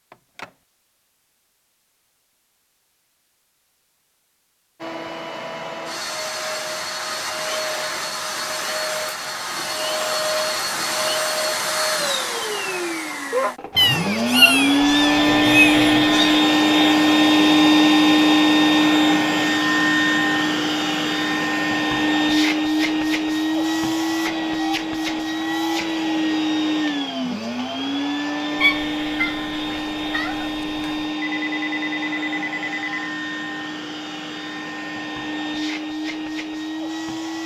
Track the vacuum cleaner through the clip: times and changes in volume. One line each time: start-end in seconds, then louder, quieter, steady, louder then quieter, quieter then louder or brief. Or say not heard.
4.8-37.4 louder then quieter.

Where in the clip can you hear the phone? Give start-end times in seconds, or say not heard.
0.1-0.5, 15.1-16.2, 31.2-33.1.